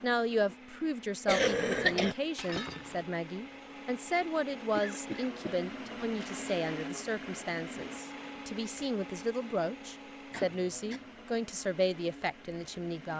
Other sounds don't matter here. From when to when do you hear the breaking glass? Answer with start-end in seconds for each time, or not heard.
2.4-3.0.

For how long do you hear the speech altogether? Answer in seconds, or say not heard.
13 s.